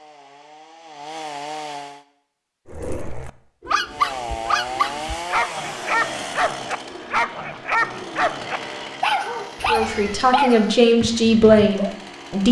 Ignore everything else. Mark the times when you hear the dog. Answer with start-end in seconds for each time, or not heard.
2.6-11.9.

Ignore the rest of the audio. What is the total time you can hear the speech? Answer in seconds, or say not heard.
3 s.